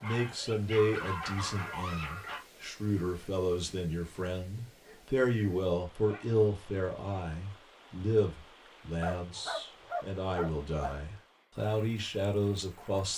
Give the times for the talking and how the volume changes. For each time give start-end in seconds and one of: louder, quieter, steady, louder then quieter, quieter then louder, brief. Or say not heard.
0.0-13.1 steady.